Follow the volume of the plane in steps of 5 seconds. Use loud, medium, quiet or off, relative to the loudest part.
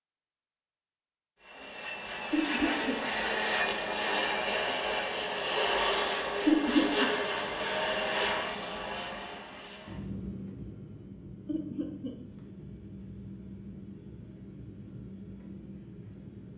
loud, loud, quiet, quiet.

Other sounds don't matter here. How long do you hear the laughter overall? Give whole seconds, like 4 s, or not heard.
2 s.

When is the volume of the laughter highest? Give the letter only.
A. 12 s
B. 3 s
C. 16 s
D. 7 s
D.